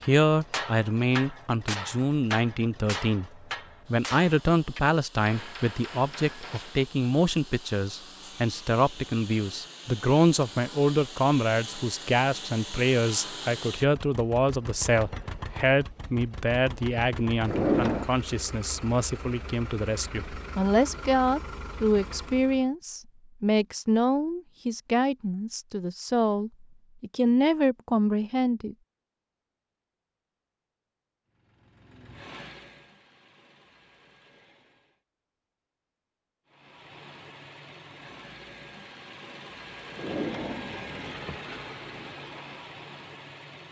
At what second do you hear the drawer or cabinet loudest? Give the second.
18 s.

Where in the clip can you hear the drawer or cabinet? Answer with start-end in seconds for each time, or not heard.
17.4-18.1, 40.0-41.4.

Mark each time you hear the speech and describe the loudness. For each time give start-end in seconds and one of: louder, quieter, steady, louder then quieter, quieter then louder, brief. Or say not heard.
0.0-28.8 steady.